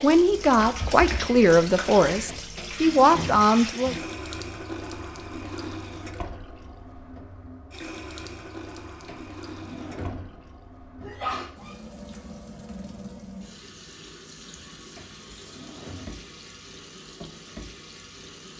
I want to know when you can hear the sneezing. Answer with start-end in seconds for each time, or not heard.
11.0-12.2.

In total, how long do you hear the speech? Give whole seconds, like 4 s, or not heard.
4 s.